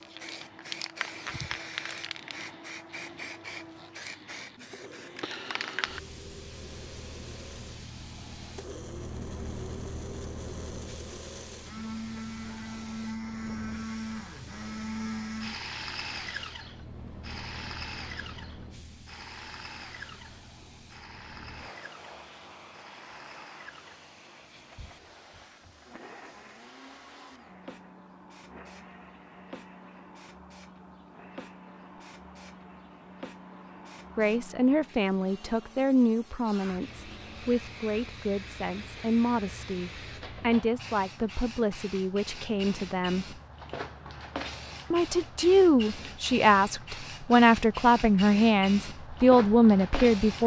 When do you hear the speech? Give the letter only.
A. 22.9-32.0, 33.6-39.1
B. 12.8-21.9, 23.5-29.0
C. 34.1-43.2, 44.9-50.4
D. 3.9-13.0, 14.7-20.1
C.